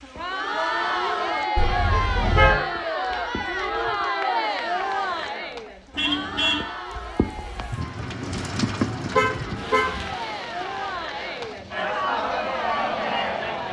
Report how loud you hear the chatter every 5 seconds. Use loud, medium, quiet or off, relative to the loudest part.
loud, medium, loud.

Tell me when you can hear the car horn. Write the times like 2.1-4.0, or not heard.
1.6-2.5, 5.9-6.7, 9.2-10.0.